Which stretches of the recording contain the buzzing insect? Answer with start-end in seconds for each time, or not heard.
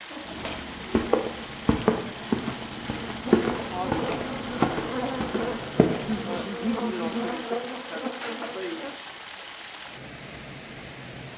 3.3-8.9.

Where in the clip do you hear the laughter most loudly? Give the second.
7 s.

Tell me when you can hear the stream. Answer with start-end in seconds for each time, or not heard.
0.0-11.3.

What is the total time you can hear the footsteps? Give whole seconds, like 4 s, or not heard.
6 s.